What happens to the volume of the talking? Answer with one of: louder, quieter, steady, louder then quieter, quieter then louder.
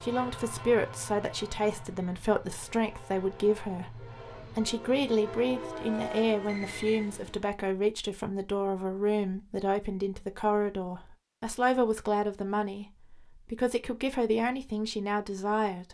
steady.